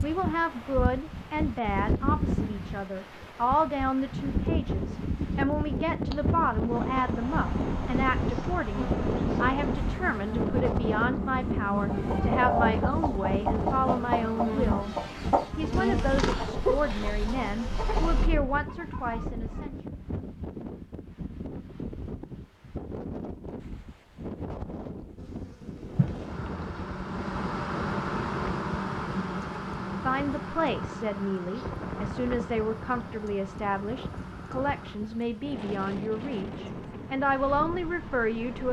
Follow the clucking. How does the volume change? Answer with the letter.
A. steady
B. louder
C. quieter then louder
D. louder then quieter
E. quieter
E.